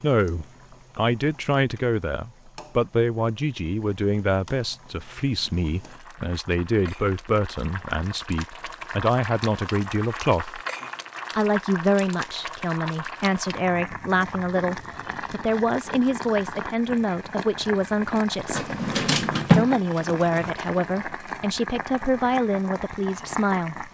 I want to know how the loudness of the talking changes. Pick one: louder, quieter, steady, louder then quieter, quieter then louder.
steady.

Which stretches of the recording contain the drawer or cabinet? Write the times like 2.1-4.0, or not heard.
18.5-20.5.